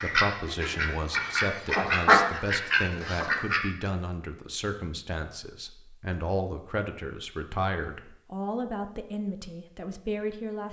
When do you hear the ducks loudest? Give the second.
2 s.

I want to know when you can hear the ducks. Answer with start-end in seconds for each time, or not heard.
0.0-3.6.